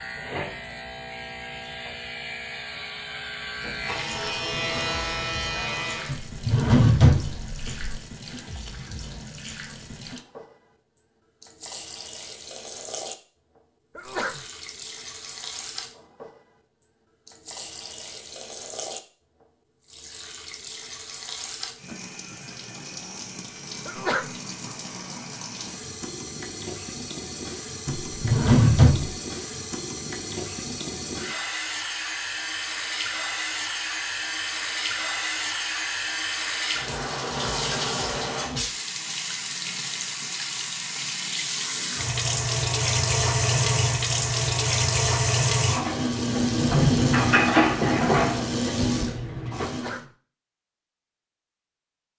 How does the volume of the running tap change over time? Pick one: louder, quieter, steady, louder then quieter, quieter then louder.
louder.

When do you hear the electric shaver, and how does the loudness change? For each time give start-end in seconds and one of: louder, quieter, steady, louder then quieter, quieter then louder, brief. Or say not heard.
0.0-6.2 louder.